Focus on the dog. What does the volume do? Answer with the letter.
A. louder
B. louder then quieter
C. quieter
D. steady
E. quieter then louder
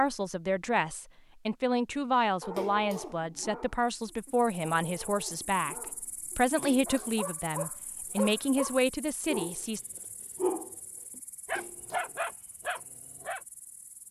E.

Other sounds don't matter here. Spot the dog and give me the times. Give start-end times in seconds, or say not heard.
2.4-9.7, 10.3-13.4.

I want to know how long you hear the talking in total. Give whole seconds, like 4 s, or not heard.
9 s.